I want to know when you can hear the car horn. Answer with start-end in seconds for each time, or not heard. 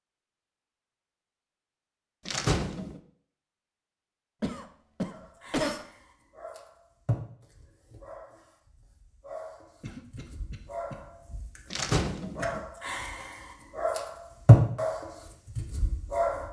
not heard.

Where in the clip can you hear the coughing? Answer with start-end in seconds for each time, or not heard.
4.4-5.8, 9.8-10.9.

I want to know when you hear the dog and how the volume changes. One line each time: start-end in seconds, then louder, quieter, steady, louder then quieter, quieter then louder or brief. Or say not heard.
5.0-16.4 quieter then louder.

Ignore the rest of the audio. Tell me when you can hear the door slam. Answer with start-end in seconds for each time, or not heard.
2.2-3.0, 11.7-12.6.